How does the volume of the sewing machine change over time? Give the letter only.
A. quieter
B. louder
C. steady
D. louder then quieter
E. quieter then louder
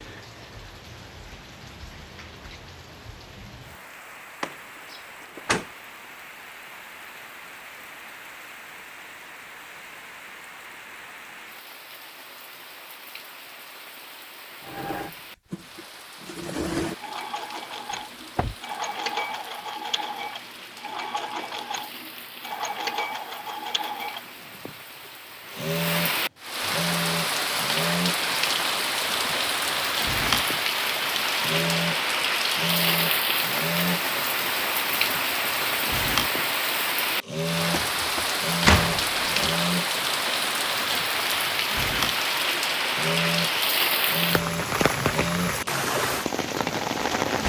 C.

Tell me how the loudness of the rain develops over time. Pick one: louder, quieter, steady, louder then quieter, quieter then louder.
louder.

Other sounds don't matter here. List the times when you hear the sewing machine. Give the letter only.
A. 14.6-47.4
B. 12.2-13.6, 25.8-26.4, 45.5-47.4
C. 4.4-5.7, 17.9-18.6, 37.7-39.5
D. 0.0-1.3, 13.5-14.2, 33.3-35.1
A.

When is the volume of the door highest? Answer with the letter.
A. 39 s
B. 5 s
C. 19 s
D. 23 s
A.